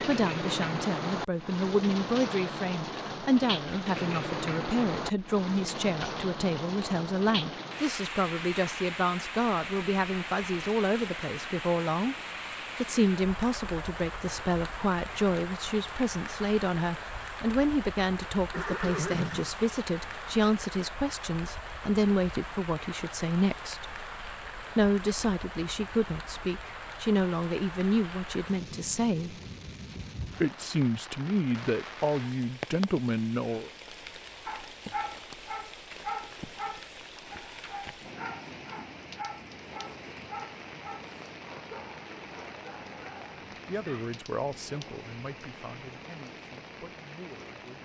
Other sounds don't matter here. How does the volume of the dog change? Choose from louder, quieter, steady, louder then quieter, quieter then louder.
quieter.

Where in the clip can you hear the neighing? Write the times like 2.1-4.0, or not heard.
18.5-19.7.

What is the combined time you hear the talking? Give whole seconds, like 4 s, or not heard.
36 s.